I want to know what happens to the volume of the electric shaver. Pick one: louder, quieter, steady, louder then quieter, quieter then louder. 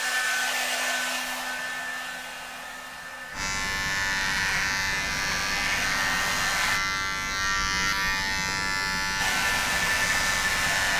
louder.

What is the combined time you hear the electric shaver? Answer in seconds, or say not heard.
11 s.